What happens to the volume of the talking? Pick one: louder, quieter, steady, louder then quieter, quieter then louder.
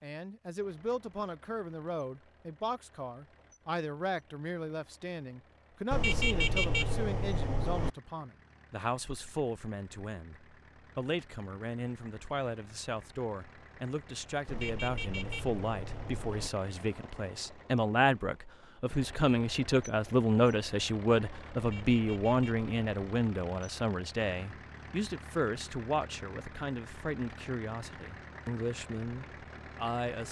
louder then quieter.